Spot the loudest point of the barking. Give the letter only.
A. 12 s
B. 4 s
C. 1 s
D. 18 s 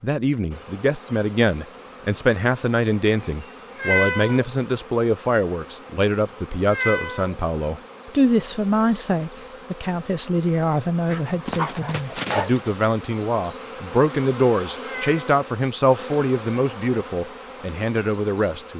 A.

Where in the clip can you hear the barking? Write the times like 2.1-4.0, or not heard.
11.1-12.9.